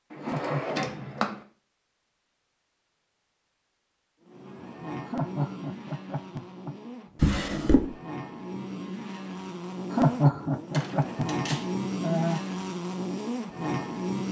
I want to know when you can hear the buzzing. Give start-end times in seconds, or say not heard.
4.2-14.2.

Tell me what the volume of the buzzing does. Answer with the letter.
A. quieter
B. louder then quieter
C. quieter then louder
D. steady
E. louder
E.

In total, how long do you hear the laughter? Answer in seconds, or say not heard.
5 s.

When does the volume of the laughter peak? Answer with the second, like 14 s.
10 s.